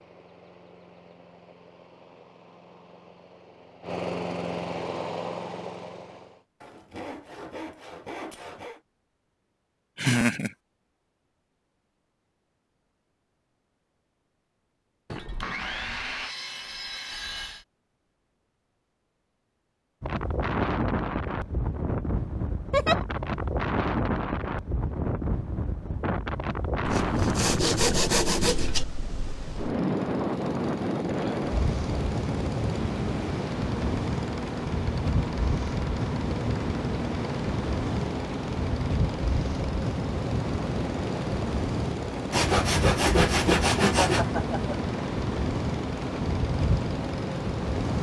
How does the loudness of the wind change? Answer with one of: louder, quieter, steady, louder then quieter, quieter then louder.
steady.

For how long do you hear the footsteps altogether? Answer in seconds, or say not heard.
not heard.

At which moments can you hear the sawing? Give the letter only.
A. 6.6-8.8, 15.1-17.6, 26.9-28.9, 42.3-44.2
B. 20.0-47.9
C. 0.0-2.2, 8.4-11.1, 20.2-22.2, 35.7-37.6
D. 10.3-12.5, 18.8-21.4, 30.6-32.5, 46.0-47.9
A.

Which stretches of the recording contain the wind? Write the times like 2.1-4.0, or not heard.
20.0-47.9.